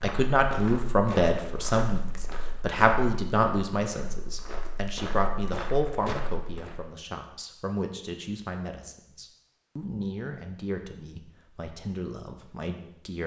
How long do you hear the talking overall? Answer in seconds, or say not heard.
13 s.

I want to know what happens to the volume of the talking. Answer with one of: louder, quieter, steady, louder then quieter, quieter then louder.
quieter.